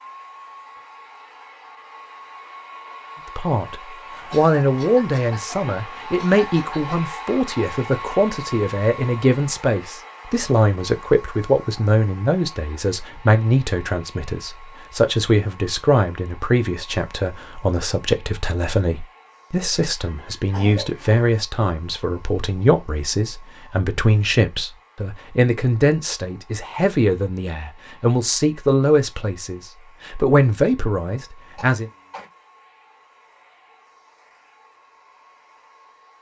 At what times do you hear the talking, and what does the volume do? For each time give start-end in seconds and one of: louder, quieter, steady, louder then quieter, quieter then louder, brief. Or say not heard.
3.4-31.9 steady.